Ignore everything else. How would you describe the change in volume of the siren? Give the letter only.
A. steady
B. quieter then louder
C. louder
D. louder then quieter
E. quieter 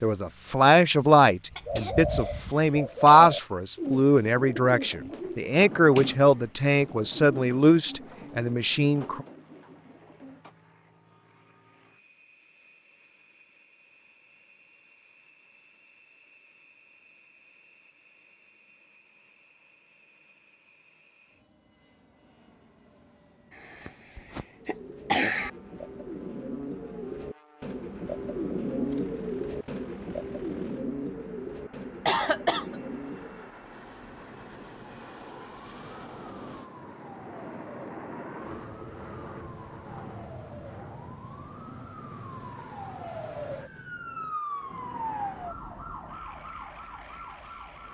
C.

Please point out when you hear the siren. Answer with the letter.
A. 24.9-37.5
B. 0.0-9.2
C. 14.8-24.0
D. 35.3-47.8
D.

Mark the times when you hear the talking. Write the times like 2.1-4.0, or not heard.
0.0-9.2.